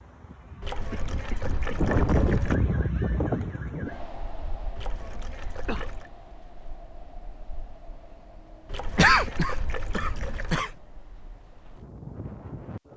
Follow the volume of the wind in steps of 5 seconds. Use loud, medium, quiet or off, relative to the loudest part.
loud, quiet, quiet.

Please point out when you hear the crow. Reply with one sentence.
You can't hear the crow here.